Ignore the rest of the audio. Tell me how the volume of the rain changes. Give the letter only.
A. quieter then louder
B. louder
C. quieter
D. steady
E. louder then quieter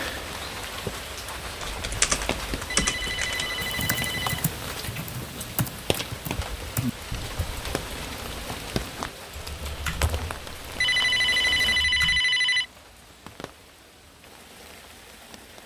C.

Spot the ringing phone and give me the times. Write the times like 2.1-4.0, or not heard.
2.7-4.5, 10.8-12.7.